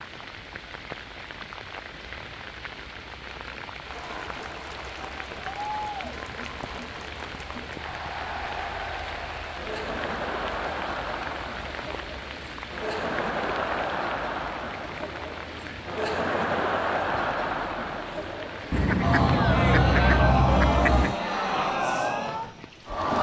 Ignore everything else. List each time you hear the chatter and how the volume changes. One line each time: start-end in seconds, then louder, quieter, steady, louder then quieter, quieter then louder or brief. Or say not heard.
3.9-23.1 louder.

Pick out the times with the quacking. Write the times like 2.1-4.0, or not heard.
18.7-21.1.